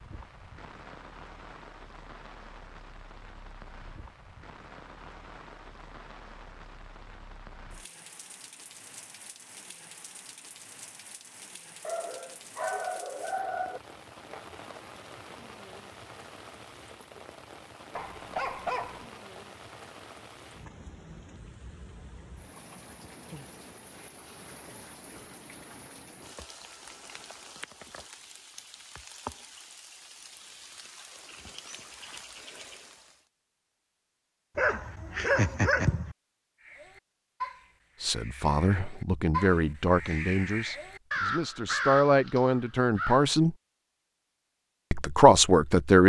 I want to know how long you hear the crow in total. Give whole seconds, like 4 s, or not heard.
7 s.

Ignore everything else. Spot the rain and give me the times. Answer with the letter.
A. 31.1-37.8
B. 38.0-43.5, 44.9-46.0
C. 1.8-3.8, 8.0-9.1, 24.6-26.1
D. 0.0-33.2
D.